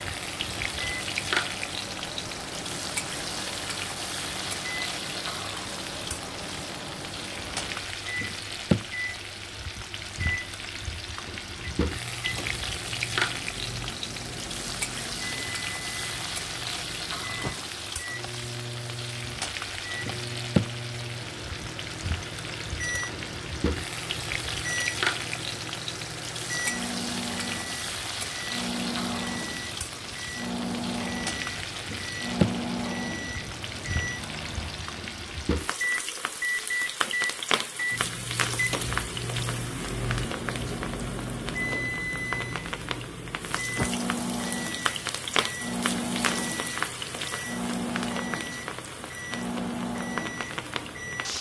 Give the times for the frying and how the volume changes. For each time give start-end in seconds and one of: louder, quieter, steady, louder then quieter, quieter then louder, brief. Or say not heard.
0.0-51.3 steady.